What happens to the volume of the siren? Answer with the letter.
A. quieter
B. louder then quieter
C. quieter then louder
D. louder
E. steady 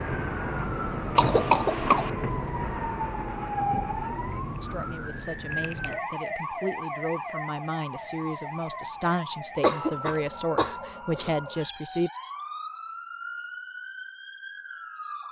A.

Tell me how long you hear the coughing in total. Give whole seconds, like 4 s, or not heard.
3 s.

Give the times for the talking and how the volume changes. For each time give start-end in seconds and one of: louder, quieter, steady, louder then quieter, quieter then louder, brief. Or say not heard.
4.6-12.1 louder.